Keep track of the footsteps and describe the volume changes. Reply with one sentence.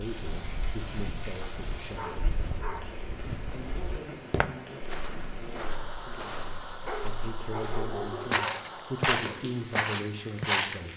The volume of the footsteps goes up.